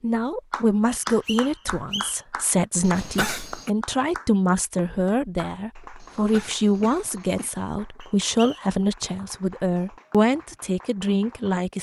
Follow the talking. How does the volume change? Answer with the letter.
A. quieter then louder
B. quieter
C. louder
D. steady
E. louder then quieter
D.